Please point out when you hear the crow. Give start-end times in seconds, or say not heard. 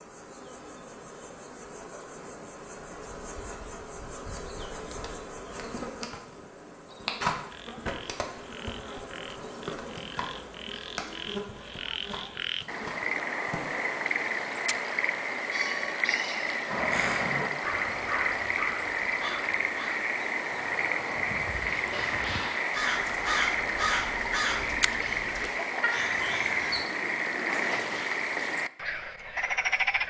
16.6-26.9.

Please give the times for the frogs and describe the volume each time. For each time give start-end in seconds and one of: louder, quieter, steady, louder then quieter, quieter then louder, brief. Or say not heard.
7.5-30.0 louder.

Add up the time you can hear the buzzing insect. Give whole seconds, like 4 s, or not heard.
14 s.